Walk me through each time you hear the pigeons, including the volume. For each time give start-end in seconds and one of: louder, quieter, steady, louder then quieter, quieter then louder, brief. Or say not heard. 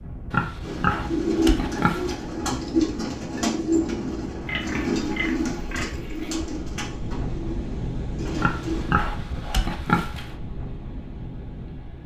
0.6-8.8 quieter.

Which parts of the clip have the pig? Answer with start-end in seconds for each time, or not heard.
0.3-2.1, 4.5-6.3, 8.3-10.3.